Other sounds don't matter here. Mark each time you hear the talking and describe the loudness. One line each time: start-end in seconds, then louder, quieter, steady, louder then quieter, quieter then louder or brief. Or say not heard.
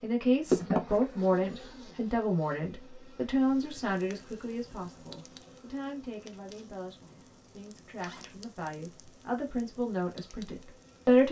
0.0-11.2 quieter then louder.